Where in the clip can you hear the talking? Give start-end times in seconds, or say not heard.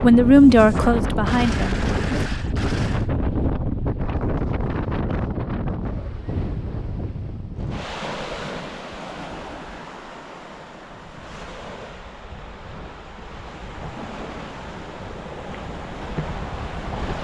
0.0-2.2.